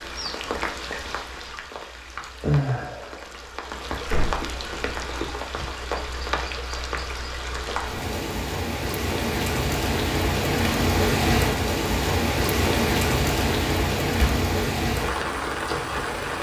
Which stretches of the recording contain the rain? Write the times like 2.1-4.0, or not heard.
0.0-16.3.